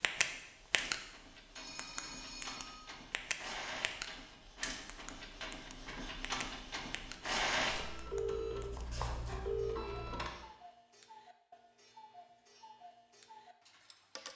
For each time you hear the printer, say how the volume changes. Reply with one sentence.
The printer can be heard from 0.2 to 10.3 s, getting louder then quieter.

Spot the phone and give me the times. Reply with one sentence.
The phone can be heard from 1.6 to 2.9 s and from 8.1 to 9.9 s.